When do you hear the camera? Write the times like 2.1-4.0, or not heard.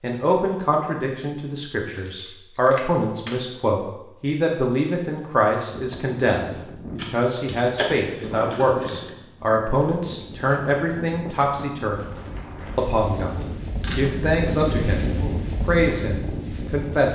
1.9-3.4, 7.0-9.1, 13.4-14.1.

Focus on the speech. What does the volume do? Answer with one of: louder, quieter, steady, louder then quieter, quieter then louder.
steady.